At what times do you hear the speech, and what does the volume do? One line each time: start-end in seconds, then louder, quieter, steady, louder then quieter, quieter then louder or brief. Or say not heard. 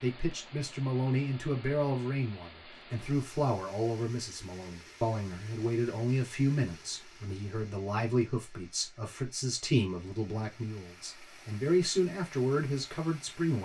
0.0-13.6 steady.